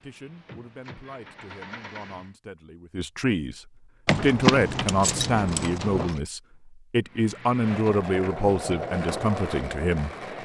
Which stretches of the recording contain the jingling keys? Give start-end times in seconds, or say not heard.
4.0-6.2.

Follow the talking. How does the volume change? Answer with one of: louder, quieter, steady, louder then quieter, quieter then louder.
louder.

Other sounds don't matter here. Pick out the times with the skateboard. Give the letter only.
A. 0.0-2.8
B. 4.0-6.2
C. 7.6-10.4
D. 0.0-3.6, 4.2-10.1
C.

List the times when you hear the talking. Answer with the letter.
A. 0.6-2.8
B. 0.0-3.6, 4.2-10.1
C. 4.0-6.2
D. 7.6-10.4
B.